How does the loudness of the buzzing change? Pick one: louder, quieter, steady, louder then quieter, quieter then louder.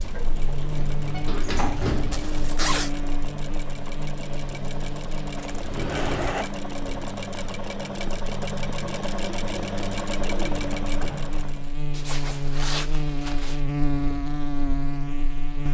quieter then louder.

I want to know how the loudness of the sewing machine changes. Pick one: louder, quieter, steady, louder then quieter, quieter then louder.
louder.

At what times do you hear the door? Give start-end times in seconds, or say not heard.
0.0-2.4, 5.6-6.3, 10.8-11.3.